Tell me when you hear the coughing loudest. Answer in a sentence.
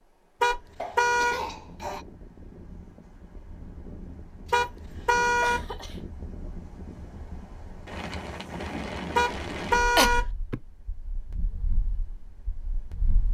The volume of the coughing peaks at 10 seconds.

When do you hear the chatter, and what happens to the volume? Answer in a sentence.
The chatter can't be heard in this clip.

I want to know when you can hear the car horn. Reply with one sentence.
The car horn can be heard from 0.4 to 1.4 s, from 4.5 to 5.6 s and from 9.2 to 10.2 s.